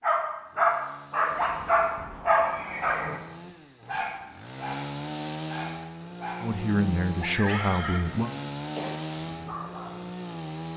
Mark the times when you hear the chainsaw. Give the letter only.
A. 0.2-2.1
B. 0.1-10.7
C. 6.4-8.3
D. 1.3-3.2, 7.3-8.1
B.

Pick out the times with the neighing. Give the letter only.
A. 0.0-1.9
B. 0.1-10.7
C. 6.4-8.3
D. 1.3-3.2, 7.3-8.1
D.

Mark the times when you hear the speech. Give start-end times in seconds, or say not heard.
6.4-8.3.